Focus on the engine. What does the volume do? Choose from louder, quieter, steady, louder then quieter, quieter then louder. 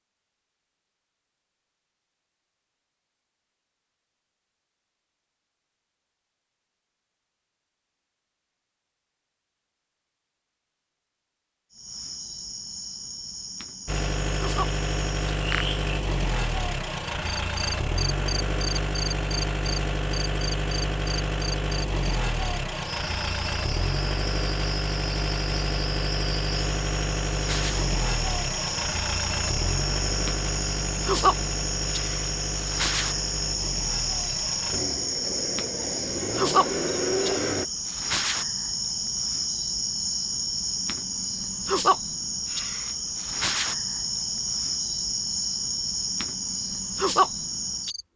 steady.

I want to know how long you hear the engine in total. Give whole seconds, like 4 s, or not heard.
24 s.